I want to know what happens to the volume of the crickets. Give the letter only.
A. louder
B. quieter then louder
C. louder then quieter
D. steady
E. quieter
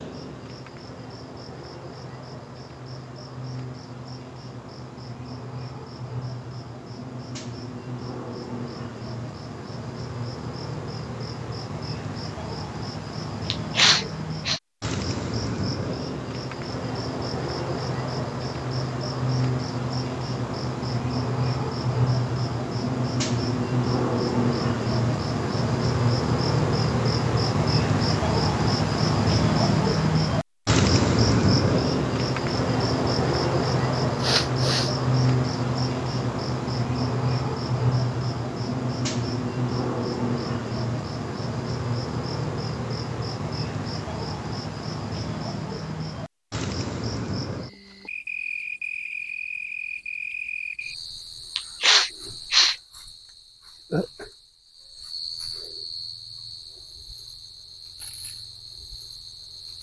C.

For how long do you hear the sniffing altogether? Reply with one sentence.
The sniffing can be heard for 3 seconds in total.